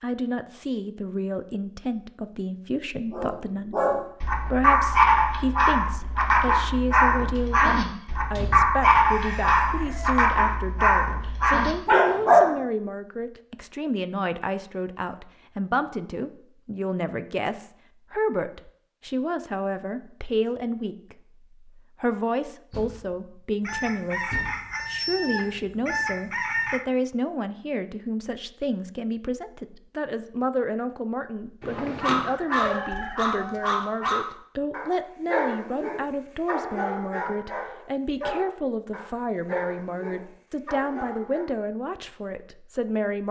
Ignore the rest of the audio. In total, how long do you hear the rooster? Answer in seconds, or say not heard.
6 s.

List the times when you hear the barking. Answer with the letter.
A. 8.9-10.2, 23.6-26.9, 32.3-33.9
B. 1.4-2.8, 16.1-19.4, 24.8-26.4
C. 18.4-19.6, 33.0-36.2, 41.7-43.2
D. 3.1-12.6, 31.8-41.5
D.